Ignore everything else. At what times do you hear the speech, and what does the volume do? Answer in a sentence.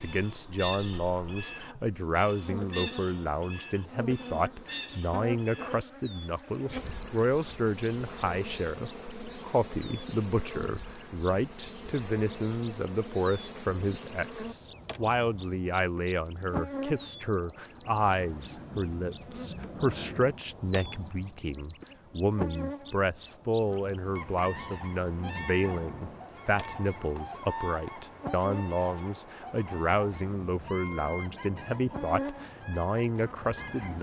The speech can be heard from 0.0 to 33.9 s, at a steady volume.